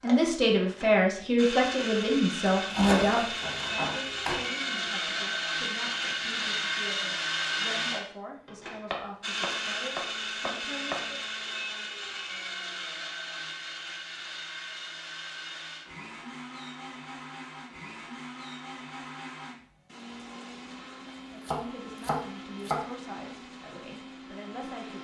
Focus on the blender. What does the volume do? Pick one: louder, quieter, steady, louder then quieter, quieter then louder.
quieter.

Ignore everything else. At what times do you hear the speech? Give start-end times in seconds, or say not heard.
0.0-11.2, 21.3-24.9.